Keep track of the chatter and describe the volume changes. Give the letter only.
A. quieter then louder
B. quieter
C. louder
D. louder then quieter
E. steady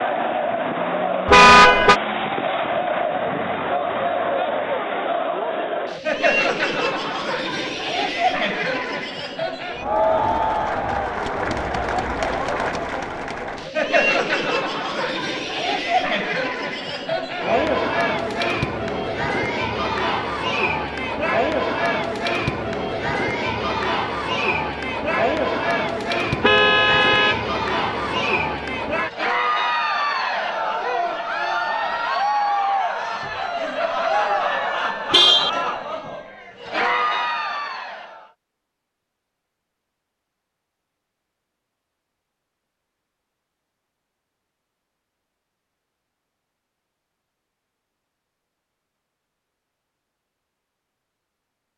E.